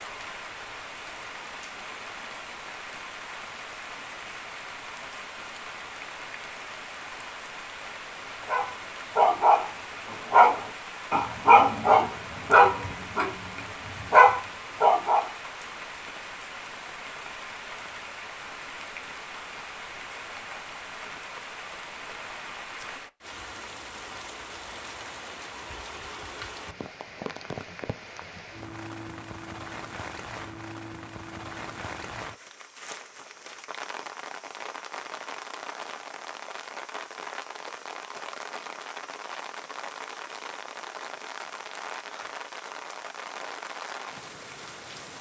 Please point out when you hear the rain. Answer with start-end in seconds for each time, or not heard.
0.0-45.1.